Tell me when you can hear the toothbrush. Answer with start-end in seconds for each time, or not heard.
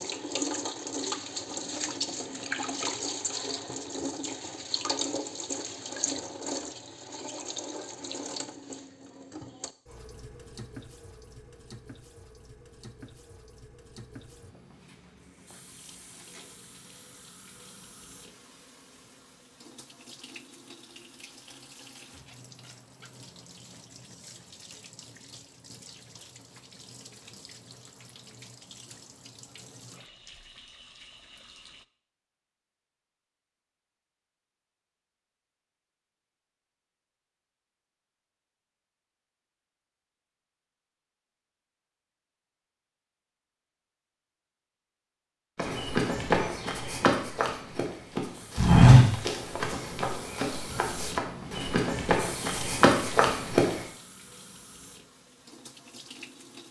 not heard.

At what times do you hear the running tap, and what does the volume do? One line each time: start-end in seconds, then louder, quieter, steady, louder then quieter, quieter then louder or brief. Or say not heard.
0.0-31.9 quieter
47.6-56.6 louder then quieter.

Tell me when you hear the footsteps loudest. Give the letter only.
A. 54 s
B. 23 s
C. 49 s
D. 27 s
C.